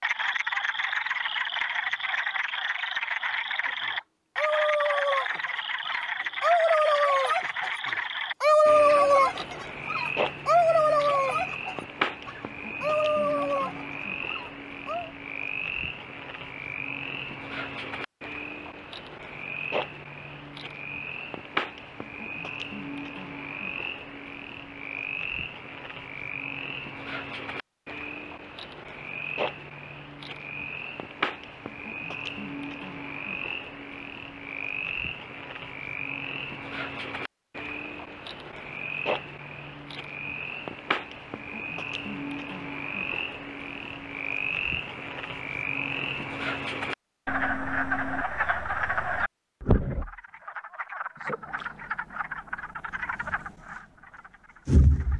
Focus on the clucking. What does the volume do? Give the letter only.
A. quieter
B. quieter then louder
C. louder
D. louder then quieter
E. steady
D.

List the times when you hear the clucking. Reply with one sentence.
You can hear the clucking from 3.6 to 15.1 s.